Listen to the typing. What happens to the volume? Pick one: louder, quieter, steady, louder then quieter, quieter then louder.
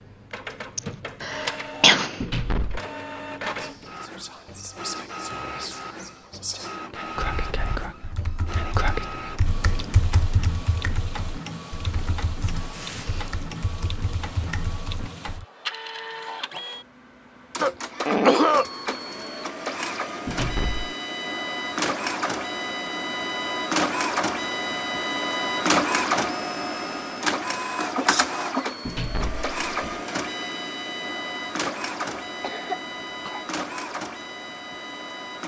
louder then quieter.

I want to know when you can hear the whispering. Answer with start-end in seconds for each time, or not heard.
3.5-9.1.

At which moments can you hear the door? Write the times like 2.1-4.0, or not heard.
2.2-2.8, 20.2-20.9, 28.9-30.0.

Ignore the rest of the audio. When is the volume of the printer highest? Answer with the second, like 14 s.
26 s.